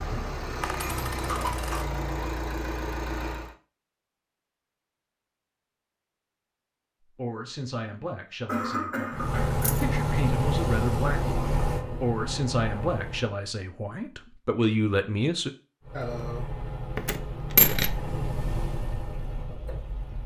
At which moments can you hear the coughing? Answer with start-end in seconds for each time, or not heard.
0.1-1.8, 8.4-9.8, 15.9-16.4.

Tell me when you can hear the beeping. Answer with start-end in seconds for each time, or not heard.
not heard.